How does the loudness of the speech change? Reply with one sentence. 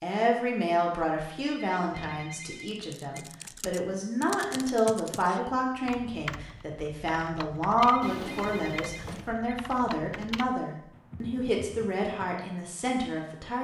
The loudness of the speech stays about the same.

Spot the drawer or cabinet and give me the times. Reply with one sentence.
The drawer or cabinet can be heard from 1.8 to 2.2 s and from 8.0 to 9.3 s.